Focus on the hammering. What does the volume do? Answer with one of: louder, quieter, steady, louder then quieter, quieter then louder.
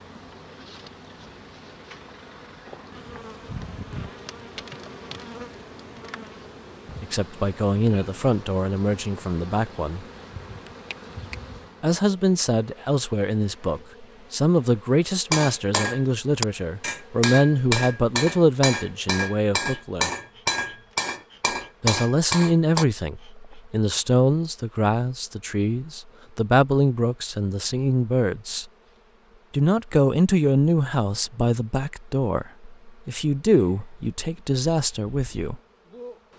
steady.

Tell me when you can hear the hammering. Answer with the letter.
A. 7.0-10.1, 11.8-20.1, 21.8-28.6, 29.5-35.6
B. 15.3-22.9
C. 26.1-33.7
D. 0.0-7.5
B.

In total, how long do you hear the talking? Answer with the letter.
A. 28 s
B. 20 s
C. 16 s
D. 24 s
D.